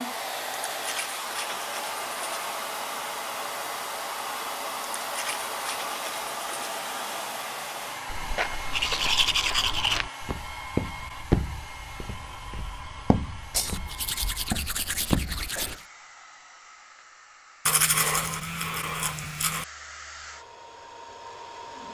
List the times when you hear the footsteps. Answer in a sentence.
You can hear the footsteps from 8.1 to 15.8 s.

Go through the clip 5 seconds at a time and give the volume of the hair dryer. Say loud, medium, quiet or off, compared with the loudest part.
loud, loud, medium, quiet, medium.